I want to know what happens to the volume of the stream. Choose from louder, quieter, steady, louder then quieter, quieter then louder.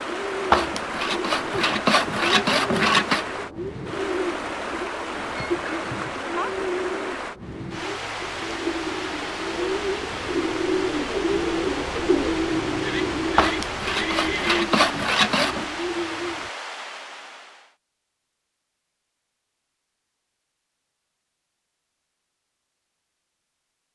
steady.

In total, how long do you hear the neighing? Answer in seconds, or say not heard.
3 s.